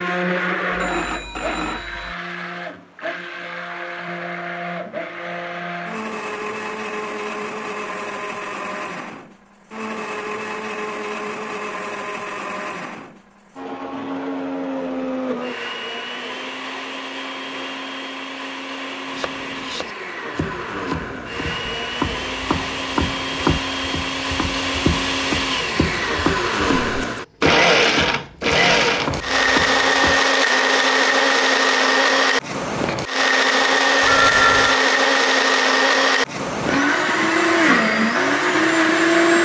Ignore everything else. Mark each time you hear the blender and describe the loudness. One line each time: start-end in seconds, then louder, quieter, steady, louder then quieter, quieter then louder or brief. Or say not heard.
0.0-39.4 louder.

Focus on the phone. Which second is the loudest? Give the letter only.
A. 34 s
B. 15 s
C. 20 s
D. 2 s
A.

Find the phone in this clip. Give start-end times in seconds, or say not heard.
0.7-2.1, 34.0-34.8.